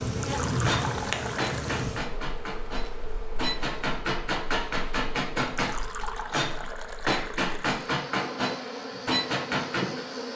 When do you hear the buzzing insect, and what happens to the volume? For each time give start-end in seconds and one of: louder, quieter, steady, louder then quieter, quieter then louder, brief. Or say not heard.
0.0-10.3 quieter then louder.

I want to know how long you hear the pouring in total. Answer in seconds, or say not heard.
4 s.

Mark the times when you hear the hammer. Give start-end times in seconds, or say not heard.
0.7-10.1.